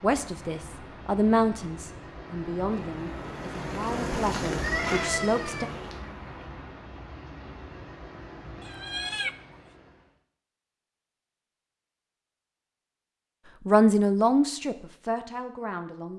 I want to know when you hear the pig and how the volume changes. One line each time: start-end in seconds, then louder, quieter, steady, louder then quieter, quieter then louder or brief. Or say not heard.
not heard.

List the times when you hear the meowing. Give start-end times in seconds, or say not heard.
4.5-5.8, 8.6-9.3.